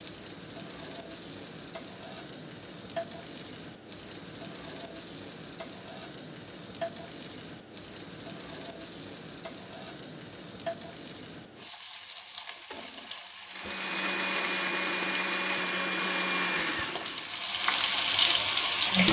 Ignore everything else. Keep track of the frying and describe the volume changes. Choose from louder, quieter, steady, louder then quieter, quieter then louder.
louder.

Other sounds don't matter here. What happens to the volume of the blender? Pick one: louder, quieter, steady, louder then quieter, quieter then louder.
quieter.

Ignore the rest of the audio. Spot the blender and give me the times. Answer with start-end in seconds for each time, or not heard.
13.5-18.9.